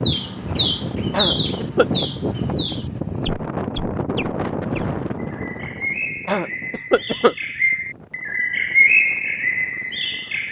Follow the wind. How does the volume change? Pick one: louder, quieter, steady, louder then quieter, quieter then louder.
quieter.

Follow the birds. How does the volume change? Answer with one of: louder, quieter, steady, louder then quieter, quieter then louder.
quieter then louder.